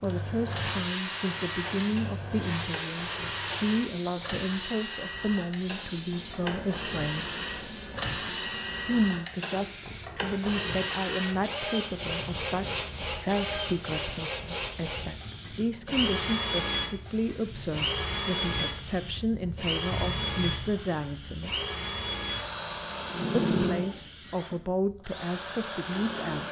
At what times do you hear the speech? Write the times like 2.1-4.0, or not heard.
0.0-7.2, 8.8-21.6, 23.4-26.4.